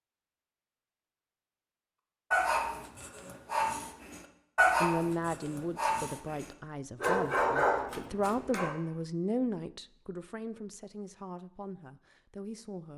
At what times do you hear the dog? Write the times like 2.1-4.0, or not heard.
2.3-8.8.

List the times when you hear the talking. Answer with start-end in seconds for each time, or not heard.
4.8-12.9.